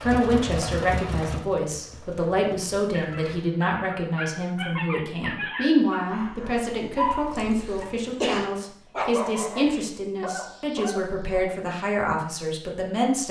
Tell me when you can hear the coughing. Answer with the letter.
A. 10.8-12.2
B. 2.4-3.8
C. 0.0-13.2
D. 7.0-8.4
D.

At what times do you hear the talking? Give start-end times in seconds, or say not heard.
0.0-13.2.